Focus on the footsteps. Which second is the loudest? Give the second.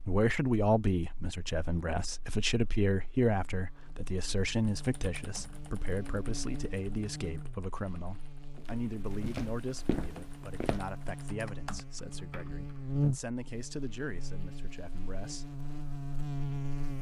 10 s.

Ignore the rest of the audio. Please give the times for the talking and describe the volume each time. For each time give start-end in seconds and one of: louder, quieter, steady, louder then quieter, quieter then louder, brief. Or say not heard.
0.1-15.5 quieter.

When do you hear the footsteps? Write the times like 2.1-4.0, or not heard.
8.6-10.9.